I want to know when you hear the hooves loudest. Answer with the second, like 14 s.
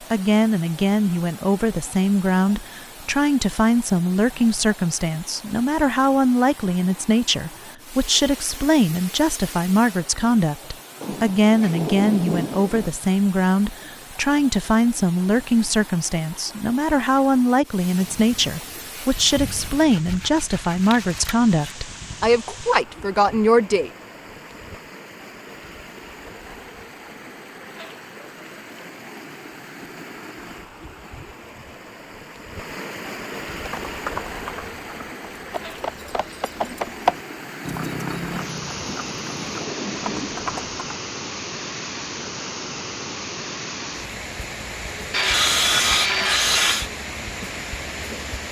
37 s.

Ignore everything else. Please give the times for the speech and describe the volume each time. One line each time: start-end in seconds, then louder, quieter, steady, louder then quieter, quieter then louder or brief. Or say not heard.
0.1-23.9 steady.